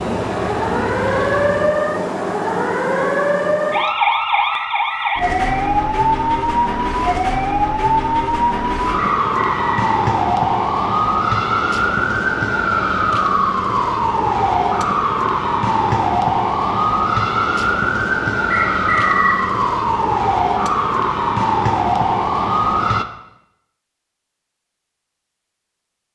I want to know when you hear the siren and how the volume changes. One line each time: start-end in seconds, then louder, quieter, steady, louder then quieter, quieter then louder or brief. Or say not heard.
0.0-23.1 steady.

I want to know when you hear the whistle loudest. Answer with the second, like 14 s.
19 s.